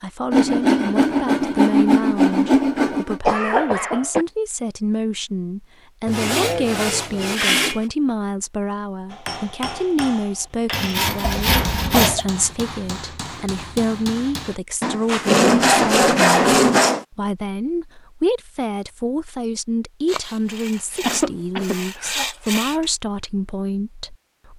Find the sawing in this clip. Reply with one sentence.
The sawing can be heard from 0.3 to 3.2 s, from 6.0 to 7.8 s, from 10.7 to 12.2 s, from 14.8 to 17.1 s and from 20.1 to 22.8 s.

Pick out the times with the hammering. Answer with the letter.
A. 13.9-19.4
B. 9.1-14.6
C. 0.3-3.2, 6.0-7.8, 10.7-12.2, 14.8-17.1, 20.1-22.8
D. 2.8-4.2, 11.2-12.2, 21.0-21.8
B.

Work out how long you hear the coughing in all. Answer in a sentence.
The coughing can be heard for 3 seconds in total.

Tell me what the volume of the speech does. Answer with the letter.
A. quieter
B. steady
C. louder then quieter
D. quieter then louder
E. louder
B.